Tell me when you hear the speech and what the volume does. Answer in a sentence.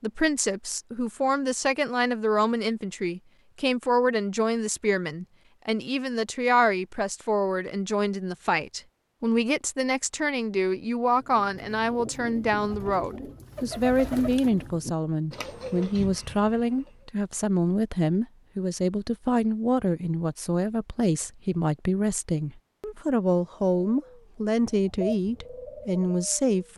You can hear the speech from 0.0 to 26.7 s, at a steady volume.